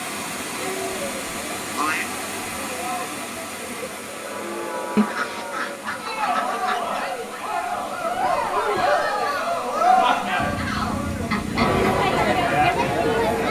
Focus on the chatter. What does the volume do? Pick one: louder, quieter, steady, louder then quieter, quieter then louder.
louder.